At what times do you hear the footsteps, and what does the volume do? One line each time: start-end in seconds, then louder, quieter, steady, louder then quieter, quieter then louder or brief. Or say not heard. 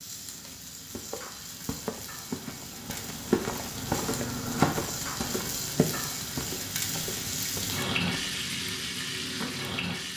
0.2-8.4 louder then quieter.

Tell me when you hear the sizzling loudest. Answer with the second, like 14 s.
8 s.